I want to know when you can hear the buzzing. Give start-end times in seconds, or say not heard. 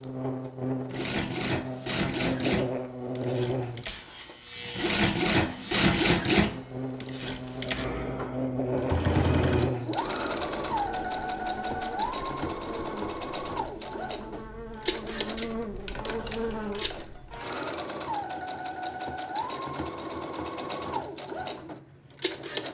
0.0-17.8.